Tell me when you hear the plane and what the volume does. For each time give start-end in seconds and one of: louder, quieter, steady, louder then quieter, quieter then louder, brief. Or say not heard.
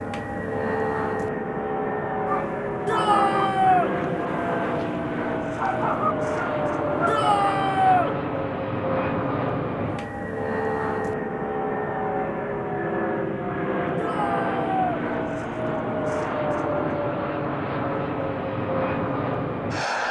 0.0-20.0 steady.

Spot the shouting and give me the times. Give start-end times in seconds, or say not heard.
2.9-3.9, 7.0-8.2, 13.9-14.8.